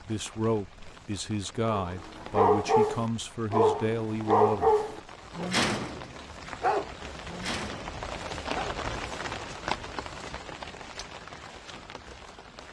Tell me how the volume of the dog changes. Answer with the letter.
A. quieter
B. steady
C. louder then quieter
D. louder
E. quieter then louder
A.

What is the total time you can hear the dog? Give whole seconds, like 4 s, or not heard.
7 s.